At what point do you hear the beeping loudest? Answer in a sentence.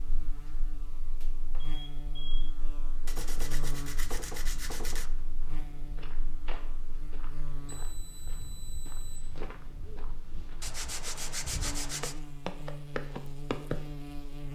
The volume of the beeping peaks at 2 seconds.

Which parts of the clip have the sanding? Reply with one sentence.
The sanding can be heard from 3.0 to 5.1 s and from 10.6 to 12.2 s.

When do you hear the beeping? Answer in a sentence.
You can hear the beeping from 0.9 to 2.6 s and from 7.7 to 9.2 s.